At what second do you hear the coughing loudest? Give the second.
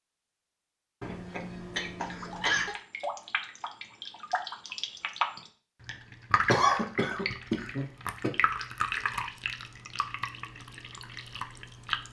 7 s.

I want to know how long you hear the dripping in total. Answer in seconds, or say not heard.
10 s.